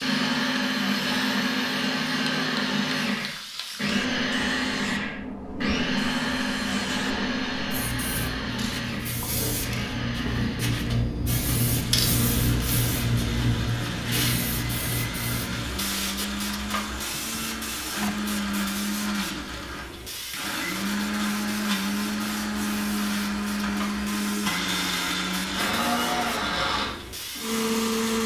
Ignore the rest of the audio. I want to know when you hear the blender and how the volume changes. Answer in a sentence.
The blender can be heard from 0.0 to 28.2 s, getting quieter then louder.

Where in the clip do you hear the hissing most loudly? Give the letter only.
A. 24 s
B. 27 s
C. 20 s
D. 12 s
D.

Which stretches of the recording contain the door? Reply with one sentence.
You can hear the door from 17.1 to 18.3 s.